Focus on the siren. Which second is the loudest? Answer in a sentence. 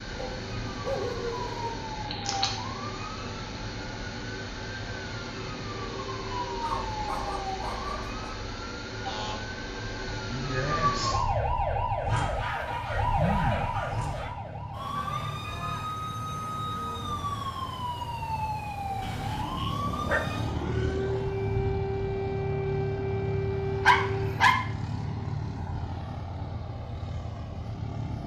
The loudest moment of the siren is at 11 seconds.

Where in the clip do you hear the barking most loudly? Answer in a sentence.
The loudest moment of the barking is at 24 seconds.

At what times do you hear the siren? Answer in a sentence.
The siren can be heard from 0.0 to 24.4 s.